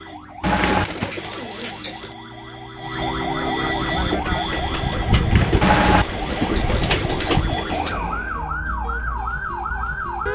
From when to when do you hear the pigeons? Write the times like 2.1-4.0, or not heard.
0.6-2.1, 5.3-8.0.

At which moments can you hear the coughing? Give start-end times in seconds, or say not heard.
0.4-0.8, 5.6-6.0.